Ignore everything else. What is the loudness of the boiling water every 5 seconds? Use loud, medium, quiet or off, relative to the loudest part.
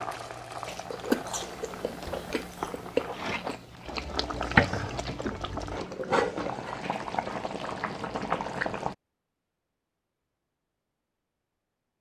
medium, loud, off.